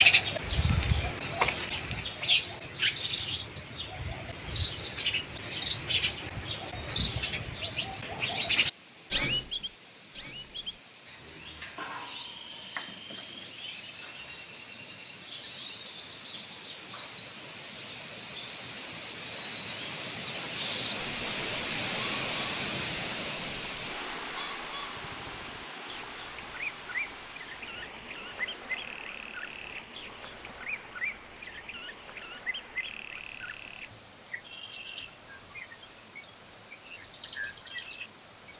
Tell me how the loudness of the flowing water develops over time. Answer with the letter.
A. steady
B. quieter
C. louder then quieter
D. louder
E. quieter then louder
C.